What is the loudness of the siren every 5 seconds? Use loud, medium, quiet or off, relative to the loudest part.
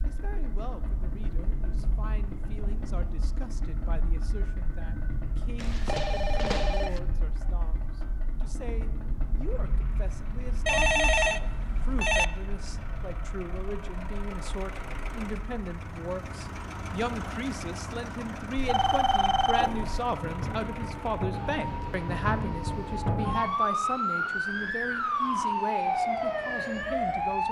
quiet, quiet, quiet, quiet, loud, loud.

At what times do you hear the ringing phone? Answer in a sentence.
The ringing phone can be heard from 5.5 to 7.0 s, from 10.7 to 12.2 s and from 18.6 to 19.9 s.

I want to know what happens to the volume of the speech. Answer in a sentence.
The volume of the speech goes up.